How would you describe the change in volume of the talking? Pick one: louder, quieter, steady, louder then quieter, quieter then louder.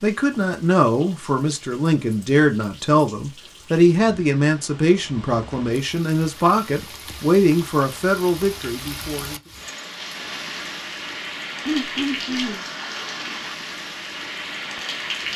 steady.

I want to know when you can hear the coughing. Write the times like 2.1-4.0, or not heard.
11.7-12.7.